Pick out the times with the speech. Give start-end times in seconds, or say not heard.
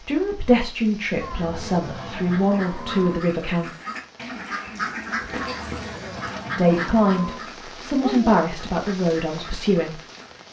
0.0-3.7, 6.5-9.9.